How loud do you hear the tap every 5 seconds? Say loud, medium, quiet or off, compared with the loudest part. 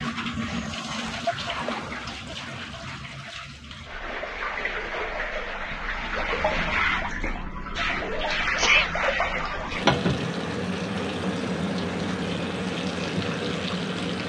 medium, loud, loud.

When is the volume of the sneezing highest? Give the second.
9 s.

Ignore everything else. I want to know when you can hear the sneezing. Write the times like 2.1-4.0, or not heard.
1.2-1.8, 8.6-9.0.